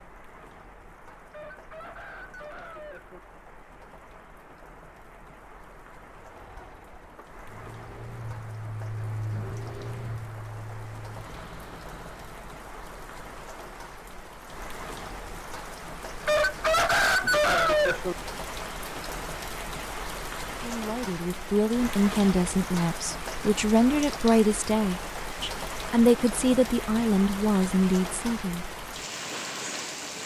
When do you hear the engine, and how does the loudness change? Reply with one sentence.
You can hear the engine from 6.2 to 12.4 s, getting louder then quieter.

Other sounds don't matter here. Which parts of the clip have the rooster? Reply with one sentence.
The rooster can be heard from 1.3 to 3.2 s and from 16.2 to 18.1 s.